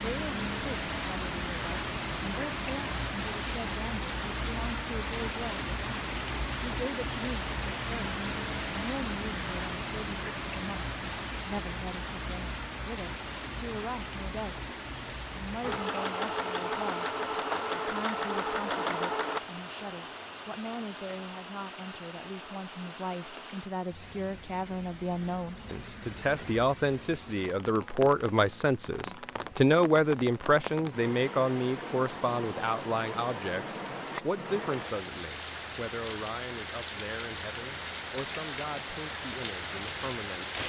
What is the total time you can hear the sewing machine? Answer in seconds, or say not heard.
4 s.